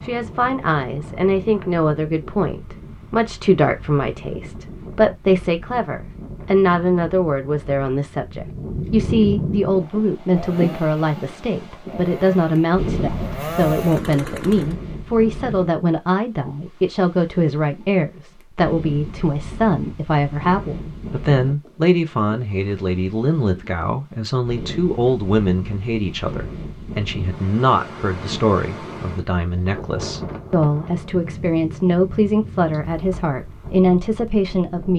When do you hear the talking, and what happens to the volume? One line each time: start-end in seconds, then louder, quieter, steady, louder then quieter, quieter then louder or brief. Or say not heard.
0.0-34.9 steady.